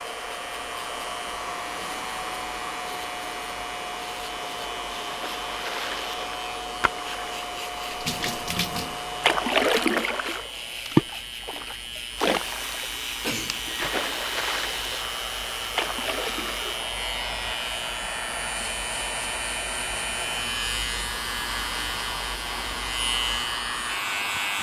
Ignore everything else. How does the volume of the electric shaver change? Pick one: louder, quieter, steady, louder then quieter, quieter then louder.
louder.